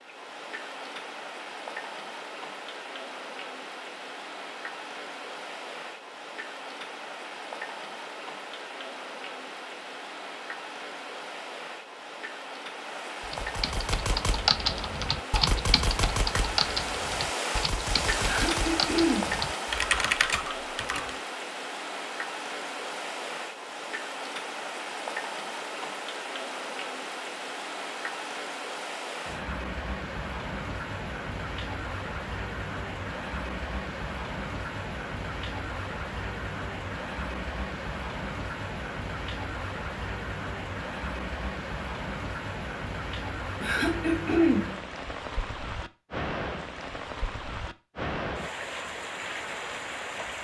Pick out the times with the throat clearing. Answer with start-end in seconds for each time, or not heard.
18.2-19.4, 43.6-44.8.